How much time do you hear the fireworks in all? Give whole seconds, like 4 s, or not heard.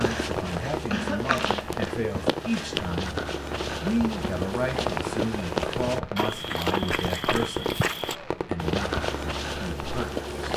9 s.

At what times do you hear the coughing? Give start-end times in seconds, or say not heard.
0.9-1.6.